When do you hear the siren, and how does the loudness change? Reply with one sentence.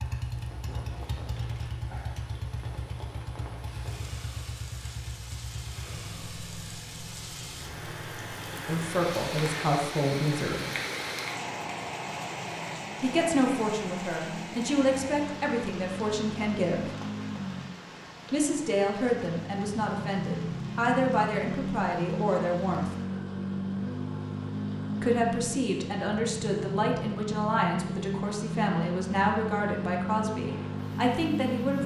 You can't hear the siren here.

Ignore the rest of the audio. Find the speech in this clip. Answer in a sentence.
The speech can be heard from 8.7 to 10.7 s, from 13.0 to 16.9 s, from 18.3 to 22.9 s and from 25.0 to 31.8 s.